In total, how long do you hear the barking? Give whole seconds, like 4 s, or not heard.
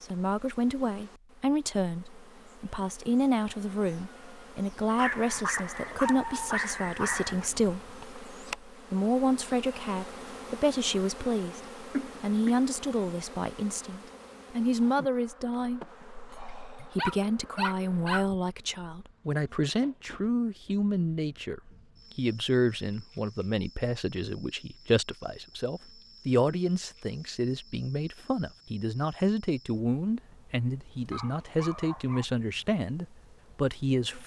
6 s.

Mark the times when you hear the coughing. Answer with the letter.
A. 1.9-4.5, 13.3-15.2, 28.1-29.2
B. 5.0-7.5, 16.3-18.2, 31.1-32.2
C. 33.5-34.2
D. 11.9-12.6
D.